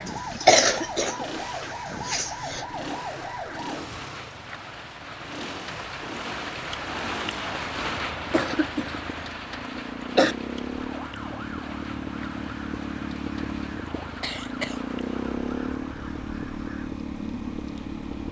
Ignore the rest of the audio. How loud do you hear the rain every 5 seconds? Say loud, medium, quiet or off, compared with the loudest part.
medium, loud, medium, quiet.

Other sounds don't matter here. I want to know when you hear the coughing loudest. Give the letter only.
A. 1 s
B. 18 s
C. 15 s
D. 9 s
A.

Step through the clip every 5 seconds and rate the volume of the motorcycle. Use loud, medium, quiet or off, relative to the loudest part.
medium, medium, loud, loud.